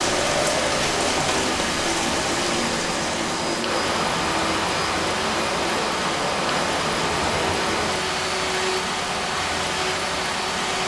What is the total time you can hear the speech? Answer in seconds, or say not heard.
not heard.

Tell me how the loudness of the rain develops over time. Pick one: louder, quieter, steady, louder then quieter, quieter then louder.
steady.